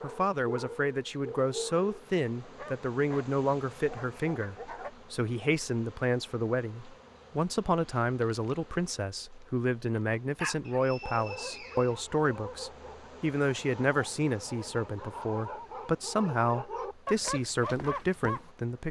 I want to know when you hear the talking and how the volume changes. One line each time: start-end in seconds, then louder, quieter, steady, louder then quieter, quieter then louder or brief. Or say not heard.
0.0-18.8 steady.